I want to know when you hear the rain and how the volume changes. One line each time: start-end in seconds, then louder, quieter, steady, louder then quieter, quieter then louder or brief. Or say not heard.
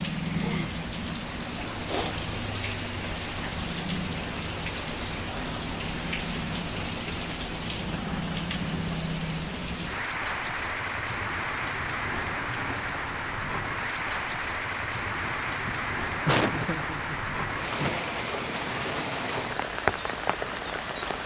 0.0-21.2 steady.